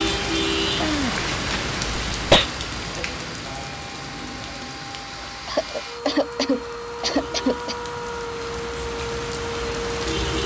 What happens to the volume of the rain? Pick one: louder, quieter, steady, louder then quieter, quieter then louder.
quieter then louder.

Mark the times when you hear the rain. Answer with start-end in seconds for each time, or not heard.
0.0-10.4.